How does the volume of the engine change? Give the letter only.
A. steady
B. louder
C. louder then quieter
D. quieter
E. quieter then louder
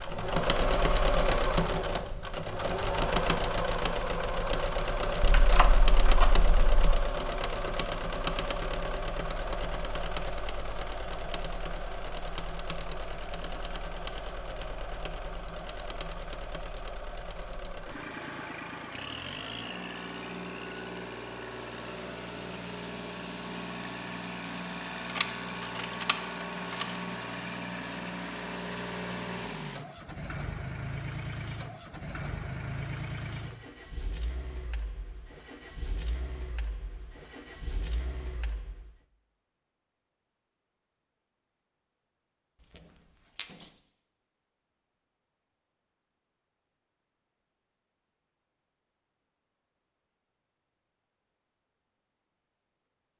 D.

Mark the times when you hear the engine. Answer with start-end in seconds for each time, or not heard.
0.0-39.0.